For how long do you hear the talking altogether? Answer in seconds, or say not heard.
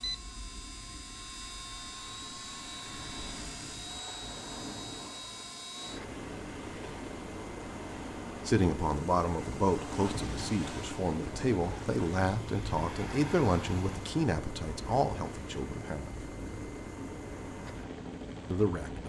8 s.